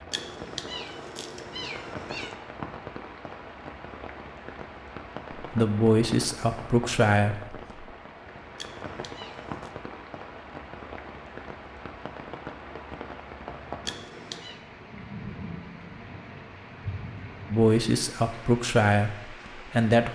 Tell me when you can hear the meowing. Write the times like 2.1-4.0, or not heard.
0.1-2.4, 8.6-9.7, 13.8-14.6.